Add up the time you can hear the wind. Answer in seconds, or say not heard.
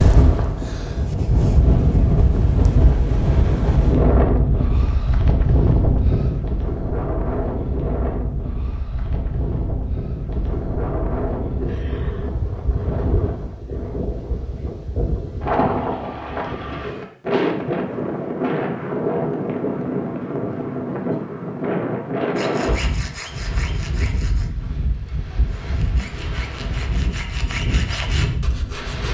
29 s.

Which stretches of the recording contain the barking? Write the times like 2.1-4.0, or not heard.
not heard.